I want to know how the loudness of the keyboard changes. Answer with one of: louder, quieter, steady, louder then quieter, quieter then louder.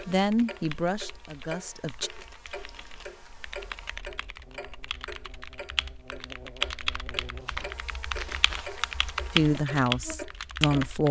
louder.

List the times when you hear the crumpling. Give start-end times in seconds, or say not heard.
2.0-3.2, 7.4-9.2.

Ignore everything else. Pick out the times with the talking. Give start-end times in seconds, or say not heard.
0.1-2.1, 9.3-11.0.